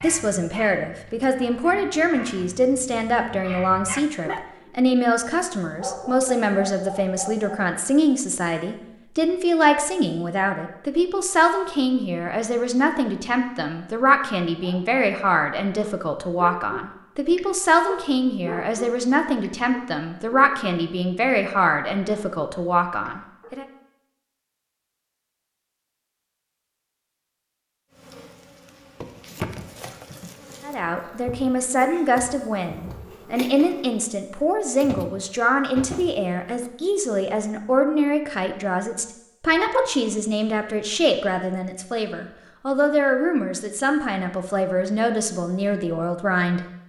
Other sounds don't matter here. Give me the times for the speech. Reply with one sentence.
The speech can be heard from 0.0 to 23.6 s and from 30.6 to 46.6 s.